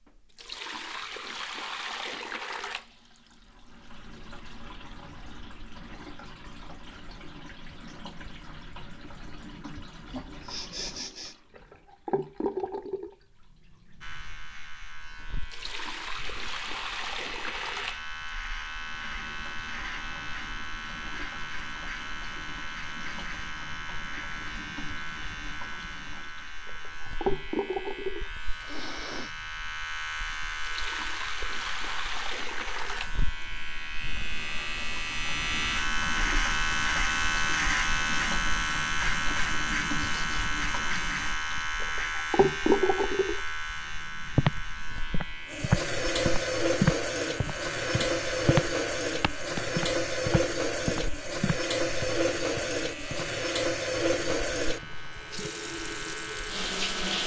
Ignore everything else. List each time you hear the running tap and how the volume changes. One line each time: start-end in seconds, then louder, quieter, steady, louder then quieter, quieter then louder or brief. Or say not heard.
0.0-57.2 louder.